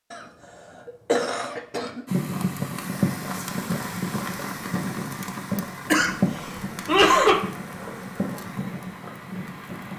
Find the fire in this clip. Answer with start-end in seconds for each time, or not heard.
2.0-9.9.